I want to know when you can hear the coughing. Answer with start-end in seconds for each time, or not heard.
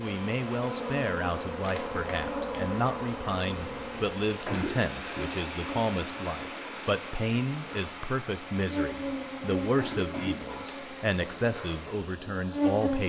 3.5-4.9, 8.9-10.5.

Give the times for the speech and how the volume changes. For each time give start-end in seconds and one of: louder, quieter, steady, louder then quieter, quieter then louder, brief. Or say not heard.
0.0-13.0 steady.